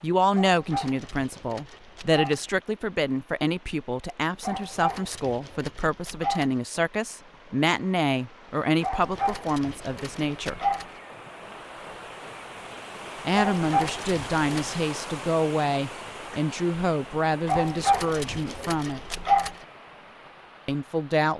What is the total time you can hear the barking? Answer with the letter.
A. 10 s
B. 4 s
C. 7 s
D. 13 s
A.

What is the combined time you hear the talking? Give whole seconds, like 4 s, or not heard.
17 s.